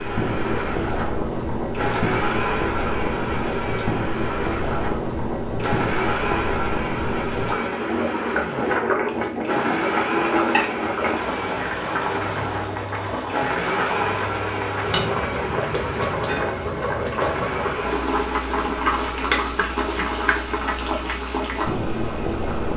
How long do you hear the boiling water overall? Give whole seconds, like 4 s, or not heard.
23 s.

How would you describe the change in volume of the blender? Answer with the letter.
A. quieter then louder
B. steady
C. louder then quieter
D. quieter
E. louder
D.